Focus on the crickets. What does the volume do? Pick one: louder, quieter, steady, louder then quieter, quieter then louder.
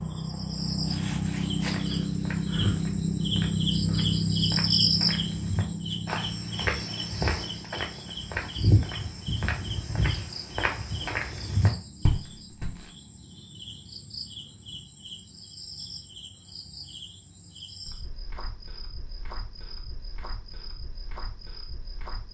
quieter.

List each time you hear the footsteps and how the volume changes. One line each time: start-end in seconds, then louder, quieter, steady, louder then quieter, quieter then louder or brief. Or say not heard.
1.6-12.8 louder.